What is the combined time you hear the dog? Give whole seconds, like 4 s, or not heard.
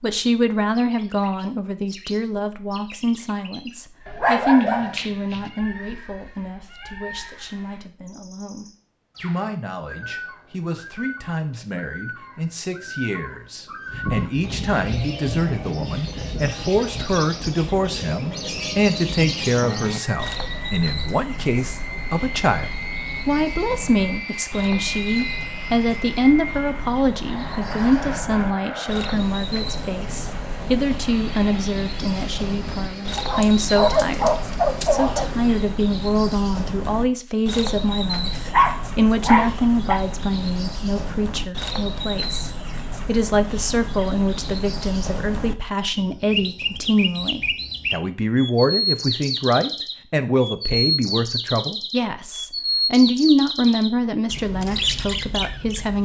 5 s.